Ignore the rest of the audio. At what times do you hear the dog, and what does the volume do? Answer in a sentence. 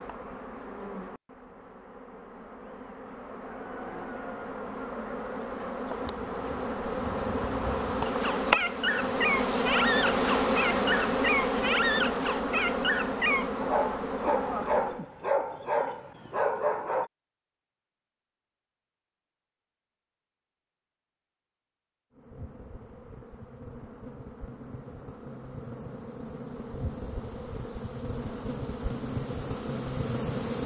The dog can be heard from 8.1 to 17.1 s, at a steady volume.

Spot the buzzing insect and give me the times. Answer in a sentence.
The buzzing insect can be heard from 0.0 to 15.1 s and from 22.1 to 30.6 s.